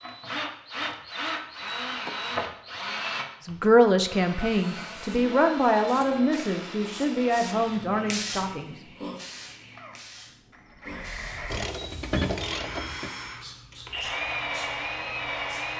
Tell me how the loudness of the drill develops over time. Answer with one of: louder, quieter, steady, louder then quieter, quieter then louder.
quieter then louder.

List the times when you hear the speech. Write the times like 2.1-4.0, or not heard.
3.5-8.8.